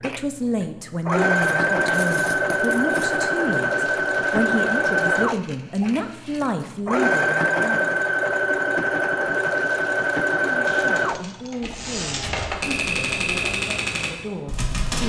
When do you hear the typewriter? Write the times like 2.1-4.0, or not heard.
3.5-5.0, 9.3-15.0.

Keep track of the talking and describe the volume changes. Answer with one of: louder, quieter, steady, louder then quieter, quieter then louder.
quieter.